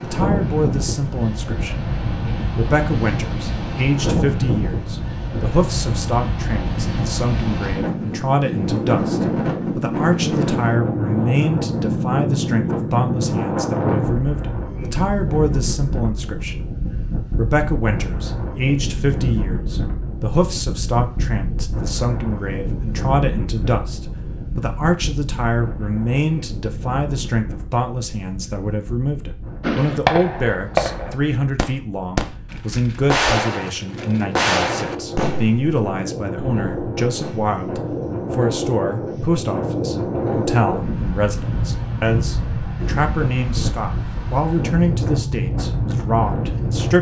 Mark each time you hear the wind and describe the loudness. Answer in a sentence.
You can hear the wind from 0.0 to 46.9 s, getting quieter then louder.